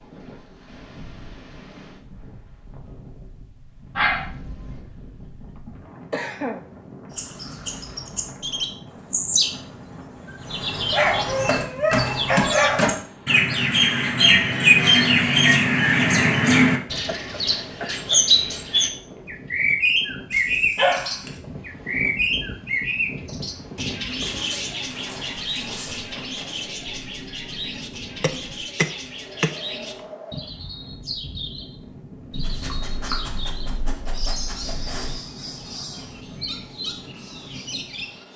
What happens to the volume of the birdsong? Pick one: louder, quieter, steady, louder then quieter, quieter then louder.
louder then quieter.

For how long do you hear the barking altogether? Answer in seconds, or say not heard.
9 s.